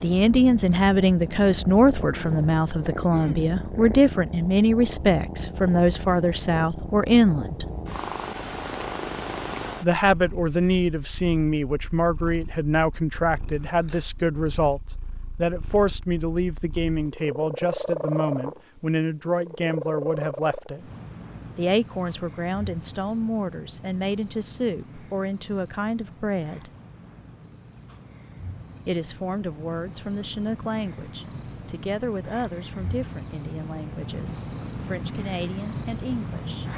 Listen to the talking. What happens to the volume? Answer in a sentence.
The loudness of the talking goes down.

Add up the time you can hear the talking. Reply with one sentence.
You can hear the talking for 32 seconds altogether.